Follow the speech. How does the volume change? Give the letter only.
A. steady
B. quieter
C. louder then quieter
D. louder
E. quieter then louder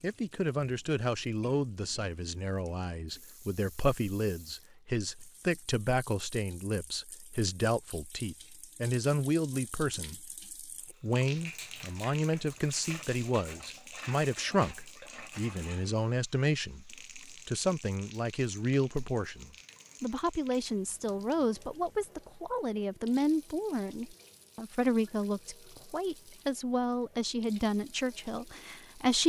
A.